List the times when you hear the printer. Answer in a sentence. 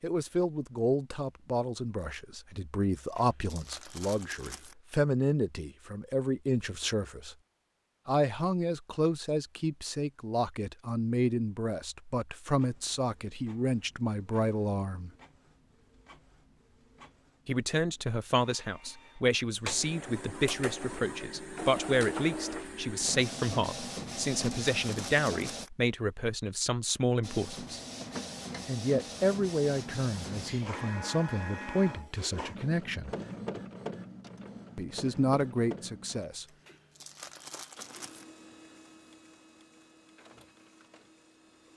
The printer can be heard from 12.5 to 25.6 s and from 27.2 to 41.7 s.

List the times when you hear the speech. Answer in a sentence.
The speech can be heard from 0.0 to 7.3 s, from 8.1 to 15.1 s, from 17.4 to 27.8 s, from 28.6 to 33.1 s and from 34.8 to 36.5 s.